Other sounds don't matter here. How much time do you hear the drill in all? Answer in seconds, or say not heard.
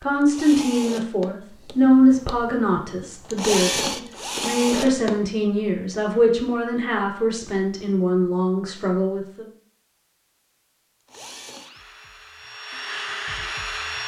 8 s.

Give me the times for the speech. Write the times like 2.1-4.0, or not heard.
0.0-9.5.